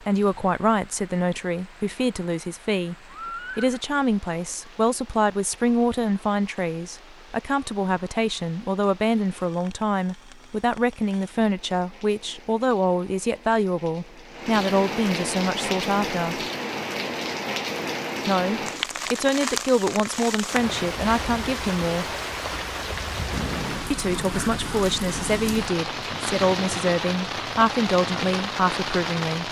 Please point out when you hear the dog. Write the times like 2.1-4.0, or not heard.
not heard.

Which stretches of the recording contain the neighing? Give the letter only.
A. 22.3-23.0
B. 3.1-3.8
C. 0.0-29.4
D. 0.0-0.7
B.